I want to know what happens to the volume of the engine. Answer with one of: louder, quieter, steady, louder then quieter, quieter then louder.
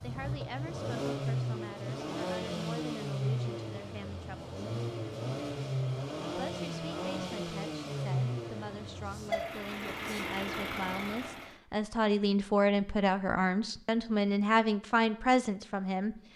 steady.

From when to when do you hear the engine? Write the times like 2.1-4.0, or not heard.
0.0-11.6.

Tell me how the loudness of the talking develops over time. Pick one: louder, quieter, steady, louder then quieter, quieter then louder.
louder.